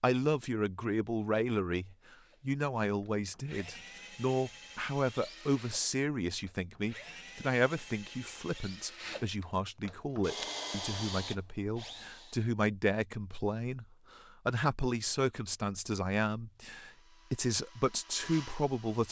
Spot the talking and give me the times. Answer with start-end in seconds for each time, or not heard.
0.0-19.0.